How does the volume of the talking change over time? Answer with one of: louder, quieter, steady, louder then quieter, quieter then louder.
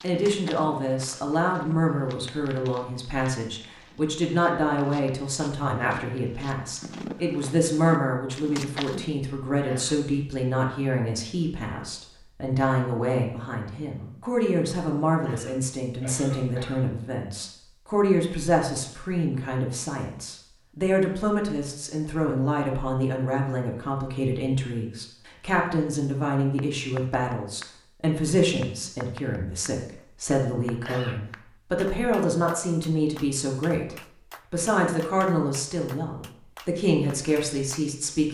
steady.